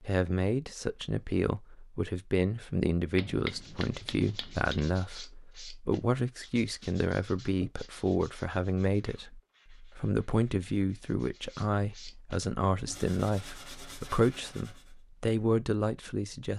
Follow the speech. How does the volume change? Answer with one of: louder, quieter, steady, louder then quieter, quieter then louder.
steady.